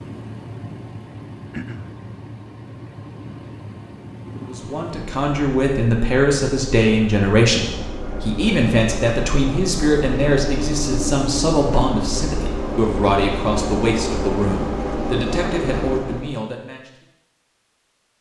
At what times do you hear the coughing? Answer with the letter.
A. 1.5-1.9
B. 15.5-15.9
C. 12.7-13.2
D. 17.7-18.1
A.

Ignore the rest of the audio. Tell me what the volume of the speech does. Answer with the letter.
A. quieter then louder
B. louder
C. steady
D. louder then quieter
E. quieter
E.